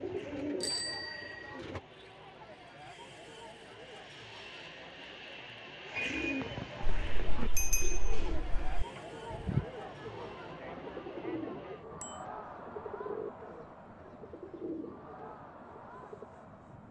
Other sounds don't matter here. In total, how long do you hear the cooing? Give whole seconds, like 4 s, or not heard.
12 s.